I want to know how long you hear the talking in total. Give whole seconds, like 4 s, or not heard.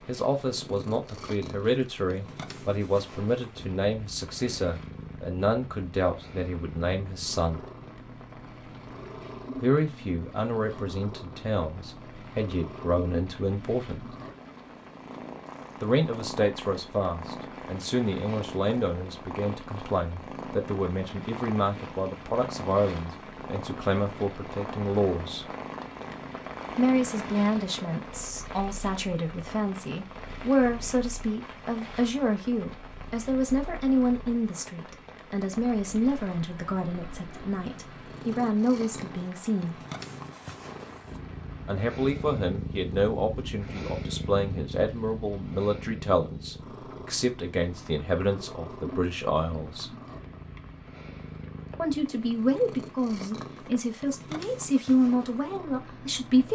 48 s.